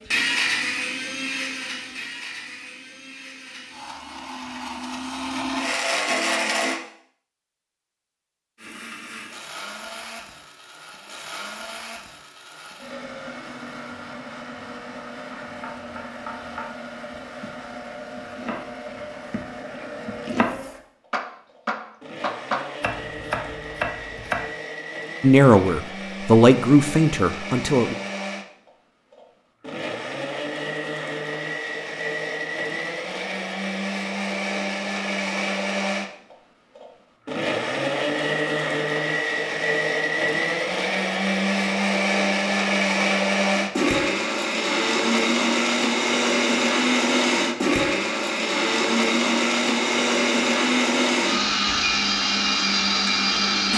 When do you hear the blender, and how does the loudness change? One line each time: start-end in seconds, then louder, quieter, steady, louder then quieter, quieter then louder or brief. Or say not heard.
0.0-6.8 quieter then louder
8.6-53.7 louder.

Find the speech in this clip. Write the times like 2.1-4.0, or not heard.
25.2-27.9.